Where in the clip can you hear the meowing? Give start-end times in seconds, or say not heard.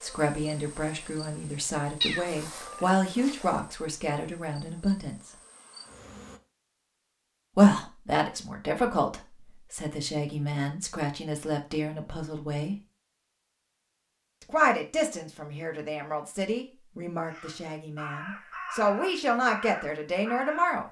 2.0-2.9.